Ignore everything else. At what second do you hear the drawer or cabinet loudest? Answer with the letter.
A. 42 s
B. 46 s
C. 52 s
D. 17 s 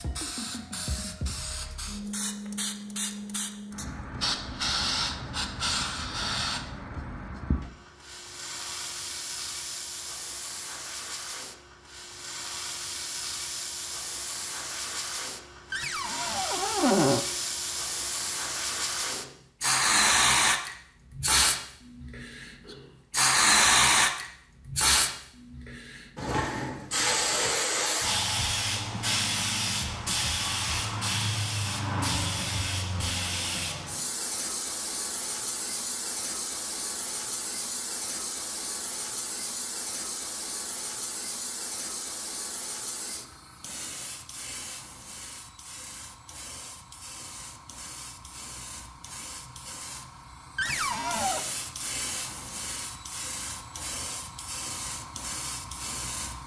D.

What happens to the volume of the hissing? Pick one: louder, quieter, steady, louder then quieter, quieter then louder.
louder then quieter.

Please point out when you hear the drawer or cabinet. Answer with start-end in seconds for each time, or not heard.
15.7-17.2, 50.5-51.5.